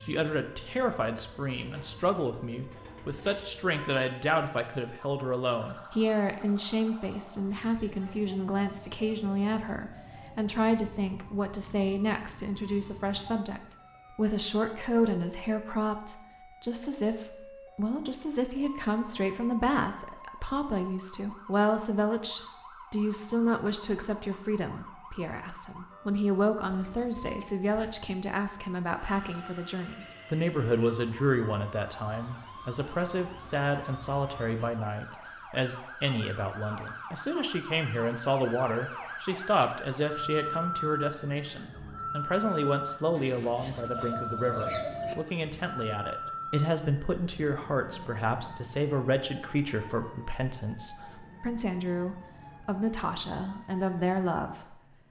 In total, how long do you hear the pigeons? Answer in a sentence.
The pigeons can be heard for 5 seconds in total.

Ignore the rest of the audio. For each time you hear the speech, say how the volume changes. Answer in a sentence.
The speech can be heard from 0.1 to 54.8 s, at a steady volume.